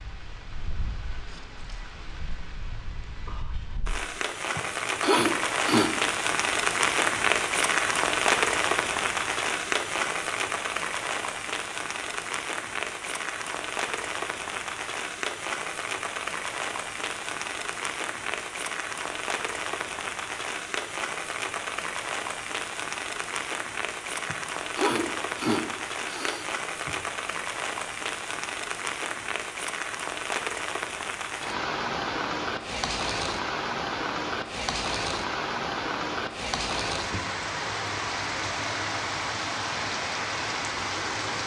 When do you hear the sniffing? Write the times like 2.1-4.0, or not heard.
4.5-5.9, 24.2-26.9.